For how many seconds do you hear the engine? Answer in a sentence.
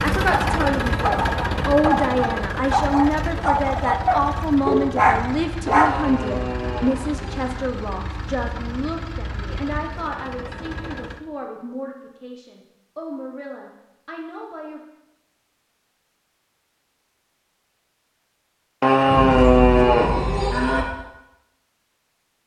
You can hear the engine for 11 seconds altogether.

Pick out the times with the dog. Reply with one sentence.
You can hear the dog from 0.3 to 6.0 s.